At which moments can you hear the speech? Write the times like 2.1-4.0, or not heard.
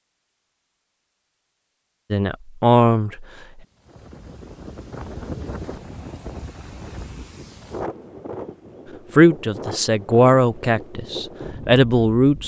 2.1-3.2, 9.1-12.4.